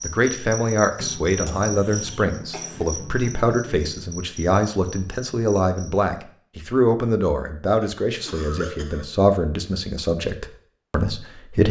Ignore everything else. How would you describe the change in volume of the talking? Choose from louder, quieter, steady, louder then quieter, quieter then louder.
steady.